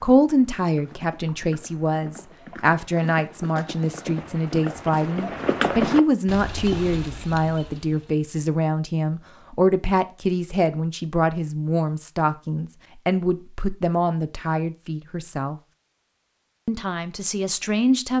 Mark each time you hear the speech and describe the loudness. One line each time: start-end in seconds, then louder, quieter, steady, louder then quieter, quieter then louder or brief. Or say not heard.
0.0-15.6 steady
16.6-18.1 brief.